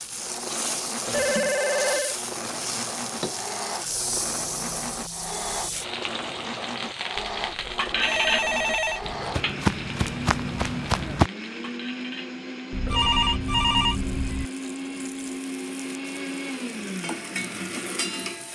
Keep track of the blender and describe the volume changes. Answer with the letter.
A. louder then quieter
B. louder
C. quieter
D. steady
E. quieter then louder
D.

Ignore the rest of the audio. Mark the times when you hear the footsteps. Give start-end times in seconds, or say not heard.
9.0-11.3.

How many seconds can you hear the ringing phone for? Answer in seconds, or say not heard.
5 s.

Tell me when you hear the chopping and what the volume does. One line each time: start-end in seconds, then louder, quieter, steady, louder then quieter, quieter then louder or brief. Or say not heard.
not heard.